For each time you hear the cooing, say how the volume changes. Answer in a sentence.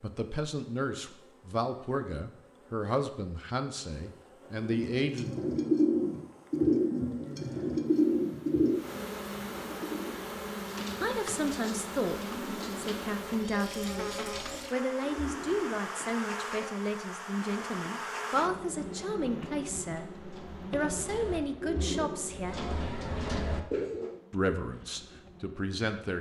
The cooing can be heard from 4.6 to 15.8 s, getting quieter; and from 20.1 to 24.1 s, getting louder.